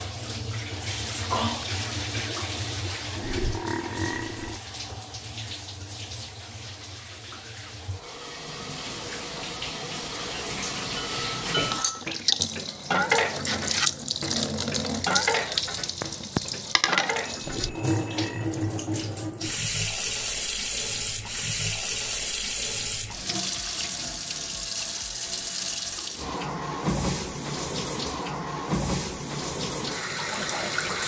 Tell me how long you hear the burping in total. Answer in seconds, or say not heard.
3 s.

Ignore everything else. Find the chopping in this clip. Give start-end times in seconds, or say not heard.
not heard.